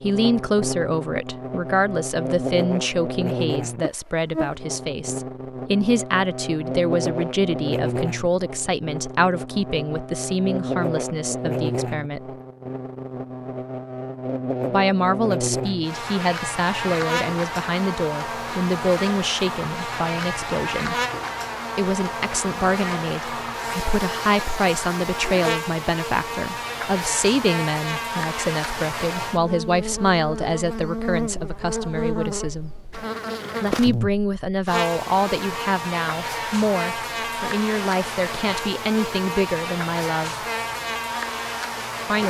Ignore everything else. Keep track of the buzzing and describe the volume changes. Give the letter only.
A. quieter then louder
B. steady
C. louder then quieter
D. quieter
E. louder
B.